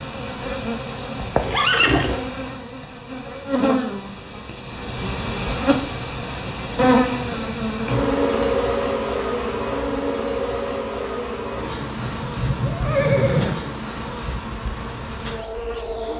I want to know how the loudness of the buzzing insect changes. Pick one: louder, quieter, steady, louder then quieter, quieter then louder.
louder then quieter.